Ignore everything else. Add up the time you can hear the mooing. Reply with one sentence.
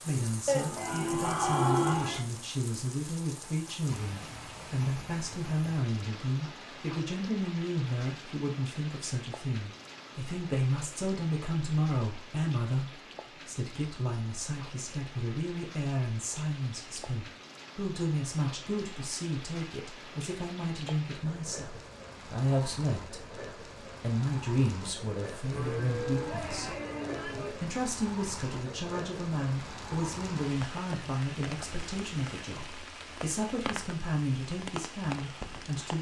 You can hear the mooing for 4 seconds altogether.